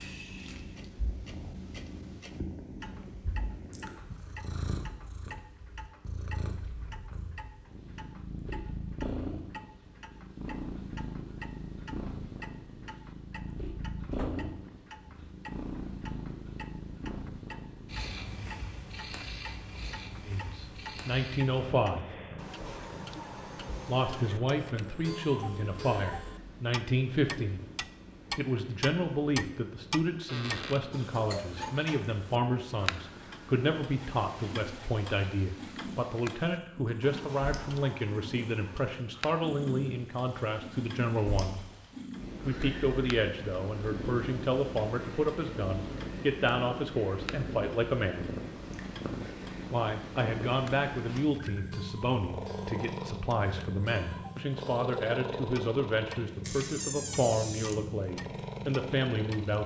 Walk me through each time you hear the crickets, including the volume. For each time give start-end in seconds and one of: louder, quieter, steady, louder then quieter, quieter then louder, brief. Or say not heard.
not heard.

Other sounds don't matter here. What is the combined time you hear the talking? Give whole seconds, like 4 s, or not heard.
35 s.